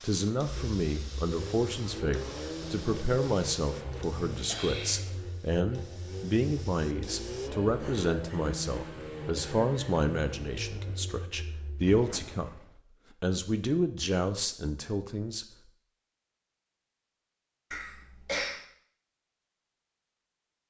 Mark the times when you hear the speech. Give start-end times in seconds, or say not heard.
0.0-12.5, 13.2-15.4.